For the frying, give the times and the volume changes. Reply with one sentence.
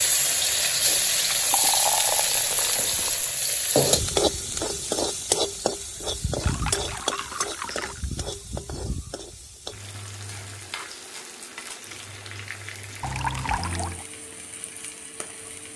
You can hear the frying from 0.0 to 15.7 s, getting quieter.